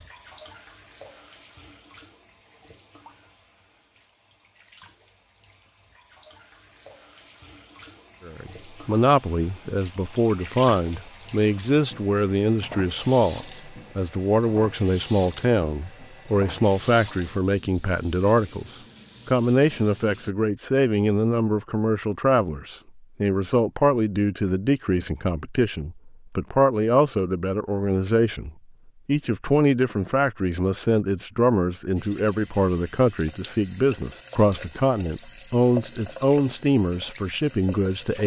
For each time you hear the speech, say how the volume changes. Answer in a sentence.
You can hear the speech from 8.2 to 38.2 s, at a steady volume.